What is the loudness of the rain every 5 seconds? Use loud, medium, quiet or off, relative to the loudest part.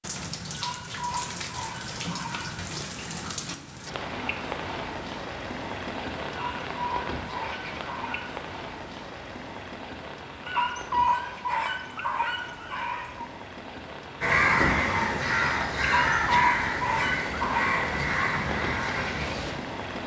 loud, loud, medium, loud.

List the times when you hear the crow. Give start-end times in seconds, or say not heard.
14.2-19.6.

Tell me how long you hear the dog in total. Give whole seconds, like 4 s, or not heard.
9 s.